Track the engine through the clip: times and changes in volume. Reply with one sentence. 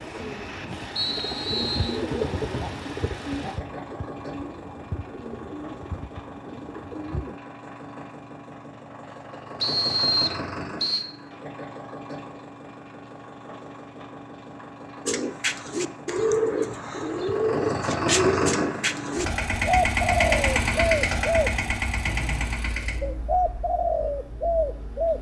The engine can be heard from 0.0 to 25.1 s, getting louder.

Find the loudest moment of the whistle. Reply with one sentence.
The loudest moment of the whistle is at 10 seconds.